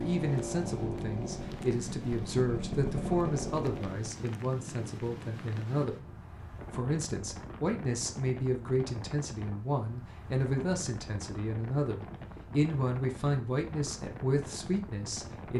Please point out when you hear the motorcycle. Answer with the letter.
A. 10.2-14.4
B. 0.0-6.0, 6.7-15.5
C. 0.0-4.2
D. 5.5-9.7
C.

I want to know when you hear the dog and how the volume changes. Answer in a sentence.
The dog can't be heard in this clip.